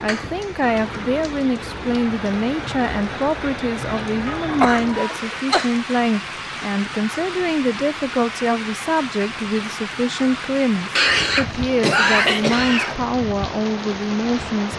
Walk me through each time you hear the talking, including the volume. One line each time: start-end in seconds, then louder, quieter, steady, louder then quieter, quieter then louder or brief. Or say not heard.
0.0-14.7 steady.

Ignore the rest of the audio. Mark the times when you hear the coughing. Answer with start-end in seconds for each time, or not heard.
4.2-5.7, 10.9-12.9.